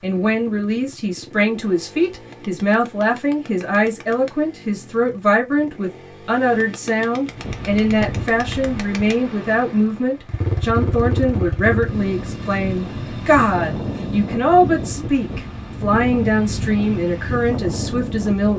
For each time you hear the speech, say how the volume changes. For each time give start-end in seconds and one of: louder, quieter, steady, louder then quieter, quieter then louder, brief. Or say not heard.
0.0-18.5 steady.